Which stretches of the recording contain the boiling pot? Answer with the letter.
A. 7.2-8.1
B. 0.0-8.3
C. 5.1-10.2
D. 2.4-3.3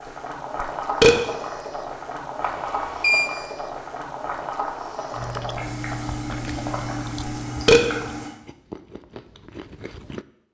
B.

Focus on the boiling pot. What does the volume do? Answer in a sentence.
The loudness of the boiling pot stays about the same.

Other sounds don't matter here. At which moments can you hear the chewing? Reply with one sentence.
The chewing can be heard from 5.1 to 10.2 s.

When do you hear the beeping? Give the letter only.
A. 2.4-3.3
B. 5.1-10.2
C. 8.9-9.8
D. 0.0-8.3
A.